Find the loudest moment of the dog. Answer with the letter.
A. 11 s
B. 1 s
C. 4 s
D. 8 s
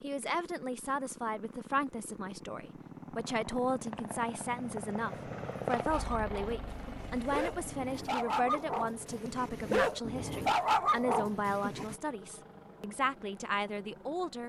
A.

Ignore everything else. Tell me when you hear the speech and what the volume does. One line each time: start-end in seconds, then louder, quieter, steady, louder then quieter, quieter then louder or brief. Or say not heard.
0.0-14.4 steady.